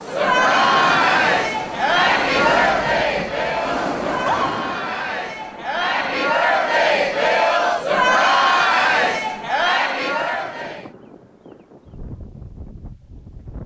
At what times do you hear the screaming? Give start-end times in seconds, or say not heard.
4.0-4.5.